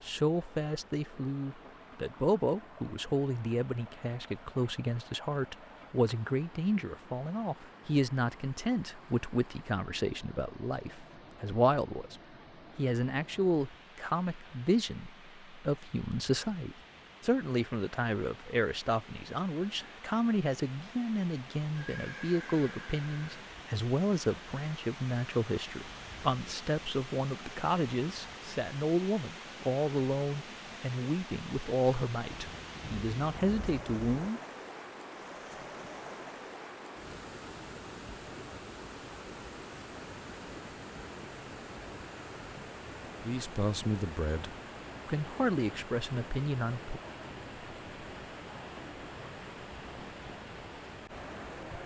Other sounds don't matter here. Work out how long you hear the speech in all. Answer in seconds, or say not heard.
38 s.